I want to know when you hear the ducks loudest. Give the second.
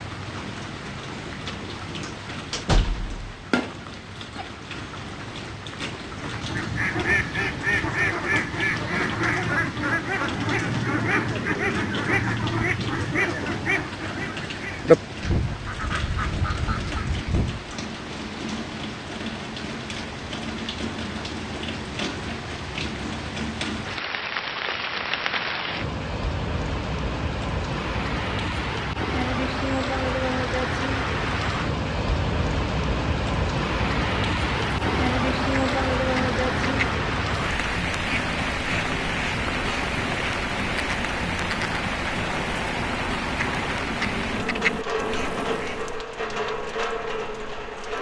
15 s.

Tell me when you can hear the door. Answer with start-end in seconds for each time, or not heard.
2.5-3.2.